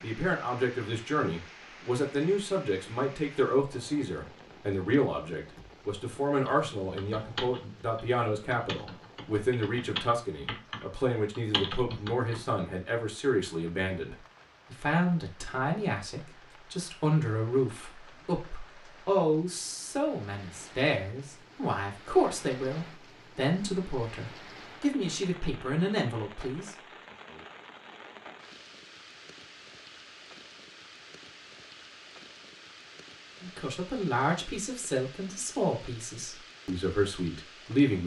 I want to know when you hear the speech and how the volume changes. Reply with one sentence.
The speech can be heard from 0.0 to 26.8 s, at a steady volume; and from 33.4 to 38.0 s, getting quieter then louder.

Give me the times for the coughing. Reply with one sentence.
You can't hear the coughing here.